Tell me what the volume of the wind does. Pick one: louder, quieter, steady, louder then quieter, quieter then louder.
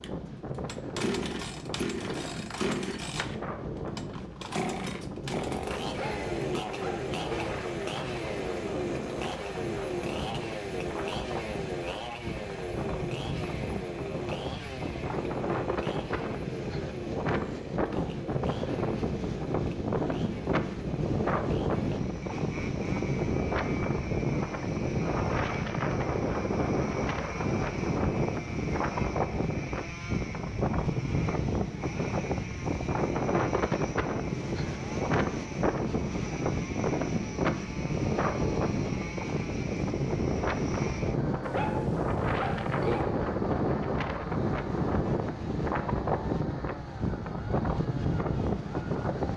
louder.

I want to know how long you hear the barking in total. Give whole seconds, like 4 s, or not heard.
3 s.